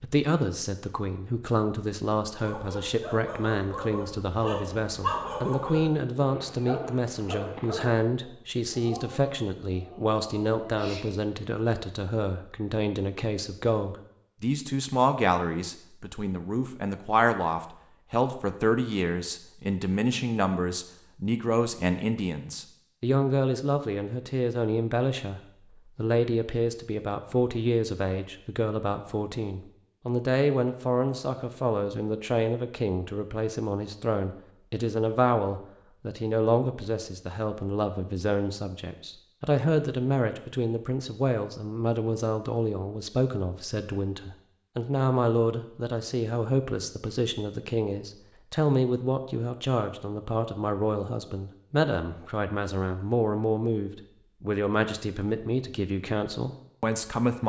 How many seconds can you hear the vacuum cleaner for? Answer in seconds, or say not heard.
not heard.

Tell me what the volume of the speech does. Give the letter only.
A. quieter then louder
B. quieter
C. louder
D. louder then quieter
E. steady
E.